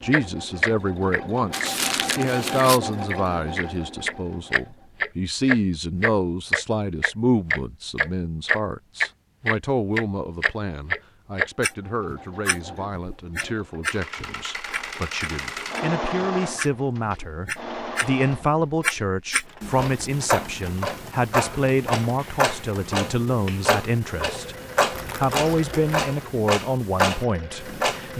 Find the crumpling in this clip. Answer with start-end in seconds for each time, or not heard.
1.5-2.8, 24.9-26.1.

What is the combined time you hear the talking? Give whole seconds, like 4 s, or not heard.
28 s.